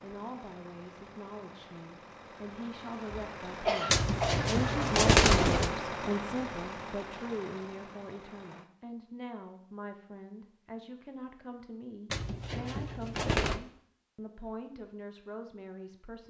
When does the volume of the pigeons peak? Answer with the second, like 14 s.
5 s.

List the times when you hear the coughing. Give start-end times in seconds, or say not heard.
3.1-4.5.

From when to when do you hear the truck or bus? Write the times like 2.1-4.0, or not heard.
0.0-8.7.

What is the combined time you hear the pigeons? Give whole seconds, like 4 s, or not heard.
3 s.